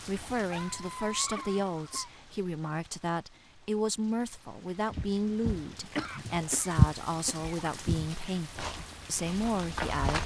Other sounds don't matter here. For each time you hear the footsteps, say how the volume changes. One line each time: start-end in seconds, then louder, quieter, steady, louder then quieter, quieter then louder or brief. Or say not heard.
4.9-10.2 louder then quieter.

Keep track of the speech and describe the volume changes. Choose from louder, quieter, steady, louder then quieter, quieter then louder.
steady.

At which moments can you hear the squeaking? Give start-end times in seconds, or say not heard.
0.5-2.1, 5.8-6.7.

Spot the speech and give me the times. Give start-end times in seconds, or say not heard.
0.1-10.2.